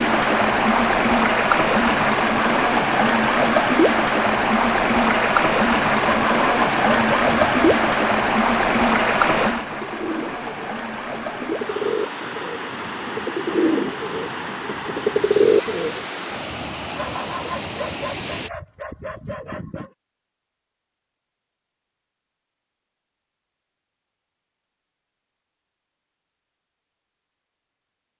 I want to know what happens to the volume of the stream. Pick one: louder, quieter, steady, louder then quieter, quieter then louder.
quieter.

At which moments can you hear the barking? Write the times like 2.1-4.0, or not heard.
6.0-7.9, 16.9-19.9.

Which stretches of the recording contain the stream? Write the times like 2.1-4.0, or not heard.
0.0-18.5.